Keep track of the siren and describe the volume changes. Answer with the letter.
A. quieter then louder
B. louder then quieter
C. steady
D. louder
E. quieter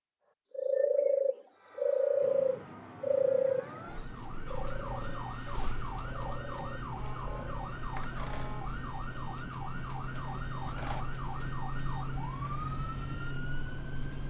D.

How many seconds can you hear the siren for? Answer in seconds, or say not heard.
13 s.